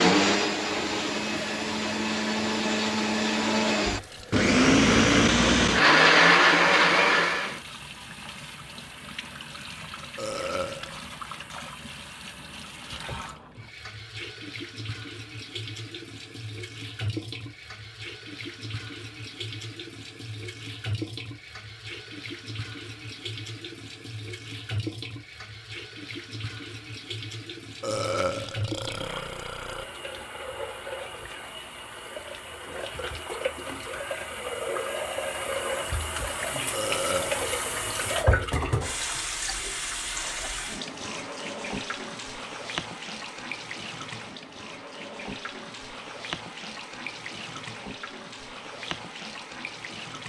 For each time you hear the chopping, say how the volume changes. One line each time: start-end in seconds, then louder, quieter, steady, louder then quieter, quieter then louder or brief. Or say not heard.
not heard.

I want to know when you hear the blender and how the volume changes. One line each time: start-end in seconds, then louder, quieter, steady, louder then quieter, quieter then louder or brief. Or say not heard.
0.0-7.6 louder.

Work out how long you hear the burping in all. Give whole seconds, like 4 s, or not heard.
4 s.